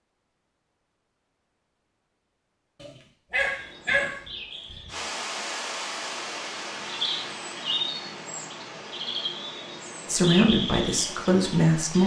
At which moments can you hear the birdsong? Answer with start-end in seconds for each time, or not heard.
3.5-12.0.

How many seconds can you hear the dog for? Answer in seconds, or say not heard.
2 s.